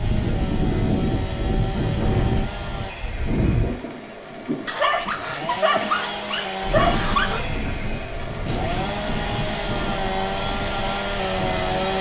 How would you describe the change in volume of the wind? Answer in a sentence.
The loudness of the wind goes down.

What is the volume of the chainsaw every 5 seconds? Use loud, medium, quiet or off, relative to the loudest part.
medium, medium, loud.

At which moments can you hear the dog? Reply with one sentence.
You can hear the dog from 4.7 to 7.5 s.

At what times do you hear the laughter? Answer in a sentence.
You can't hear the laughter here.